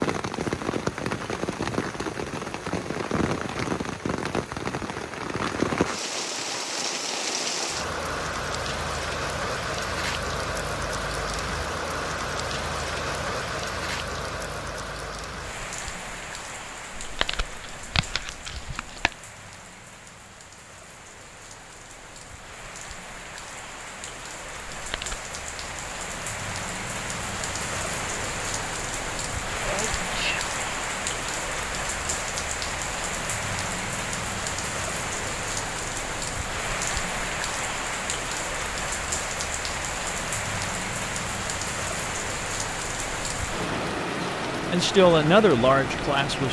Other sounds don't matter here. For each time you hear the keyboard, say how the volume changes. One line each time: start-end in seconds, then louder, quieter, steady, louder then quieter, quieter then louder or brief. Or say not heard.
not heard.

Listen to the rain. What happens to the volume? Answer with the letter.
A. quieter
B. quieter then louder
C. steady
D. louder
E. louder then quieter
B.